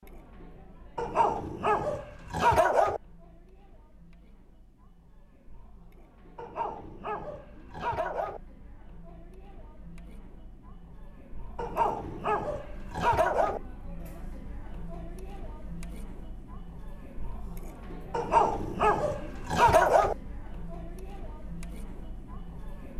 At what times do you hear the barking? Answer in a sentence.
The barking can be heard from 0.9 to 3.0 s, from 6.3 to 8.4 s, from 11.6 to 13.6 s and from 18.1 to 20.1 s.